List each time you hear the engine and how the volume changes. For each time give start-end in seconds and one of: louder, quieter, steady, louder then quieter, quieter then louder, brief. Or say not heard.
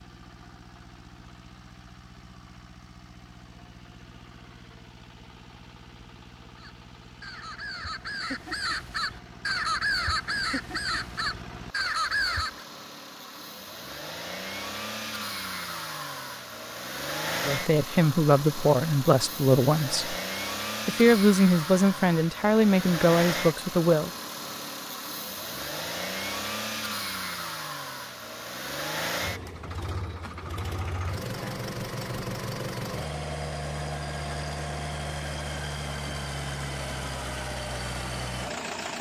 0.0-38.9 louder.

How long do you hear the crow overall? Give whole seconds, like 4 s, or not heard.
6 s.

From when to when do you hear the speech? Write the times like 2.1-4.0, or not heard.
17.4-20.1, 20.9-24.1.